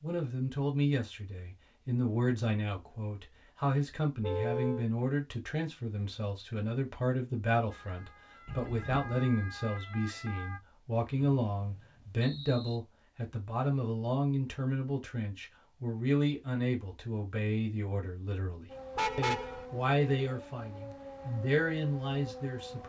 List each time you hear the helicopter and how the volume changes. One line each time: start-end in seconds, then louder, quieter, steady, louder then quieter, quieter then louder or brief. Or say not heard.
not heard.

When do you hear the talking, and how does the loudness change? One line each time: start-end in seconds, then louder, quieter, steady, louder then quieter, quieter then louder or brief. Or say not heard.
0.0-22.8 steady.